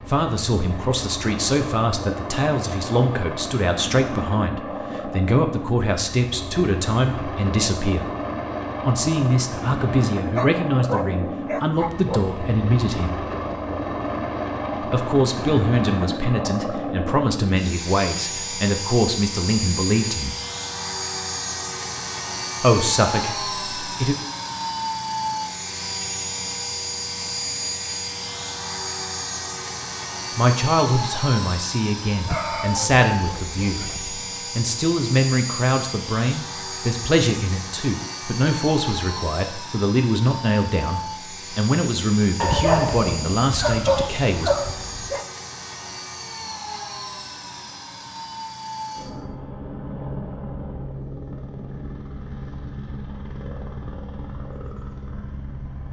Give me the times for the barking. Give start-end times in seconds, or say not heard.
10.2-12.2, 32.1-34.1, 42.4-45.2.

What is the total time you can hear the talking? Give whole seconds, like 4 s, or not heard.
33 s.